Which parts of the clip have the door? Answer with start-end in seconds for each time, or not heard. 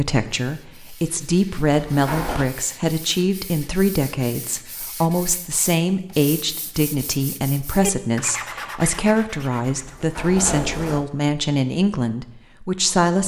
1.7-2.5, 9.8-11.1.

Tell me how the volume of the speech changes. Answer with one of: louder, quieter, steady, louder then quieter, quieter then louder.
steady.